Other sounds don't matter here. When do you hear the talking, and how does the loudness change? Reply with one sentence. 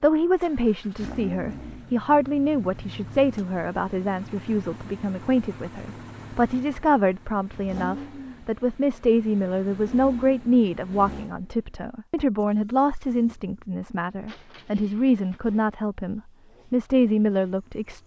You can hear the talking from 0.0 to 18.0 s, at a steady volume.